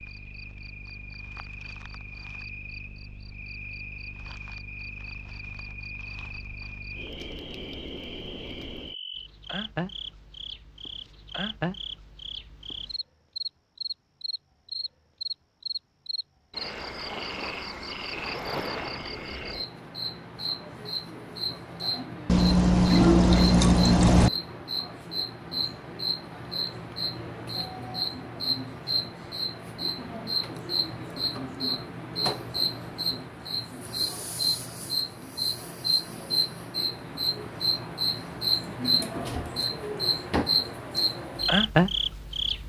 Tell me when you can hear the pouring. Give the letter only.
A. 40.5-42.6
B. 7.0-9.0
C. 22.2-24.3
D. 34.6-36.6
C.